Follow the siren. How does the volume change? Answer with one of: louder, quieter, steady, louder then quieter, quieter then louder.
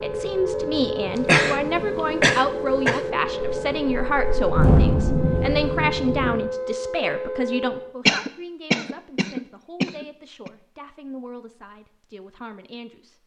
steady.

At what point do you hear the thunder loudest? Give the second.
5 s.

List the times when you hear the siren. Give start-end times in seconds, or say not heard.
0.0-8.0.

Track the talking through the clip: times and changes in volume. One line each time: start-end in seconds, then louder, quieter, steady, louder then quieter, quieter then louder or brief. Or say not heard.
0.0-13.2 quieter.